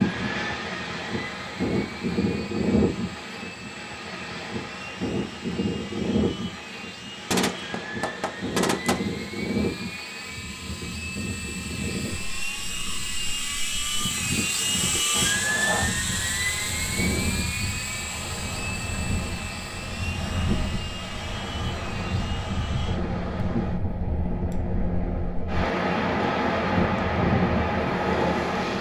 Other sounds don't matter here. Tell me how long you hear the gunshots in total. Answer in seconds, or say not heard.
2 s.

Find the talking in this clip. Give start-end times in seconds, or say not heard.
not heard.